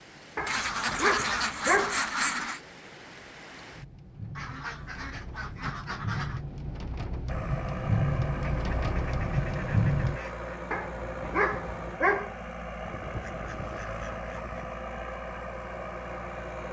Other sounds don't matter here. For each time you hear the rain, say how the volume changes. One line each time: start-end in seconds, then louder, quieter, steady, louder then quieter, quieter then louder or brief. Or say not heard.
0.0-10.2 louder.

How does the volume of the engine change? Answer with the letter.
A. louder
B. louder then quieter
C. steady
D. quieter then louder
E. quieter
C.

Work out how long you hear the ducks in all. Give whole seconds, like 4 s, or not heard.
8 s.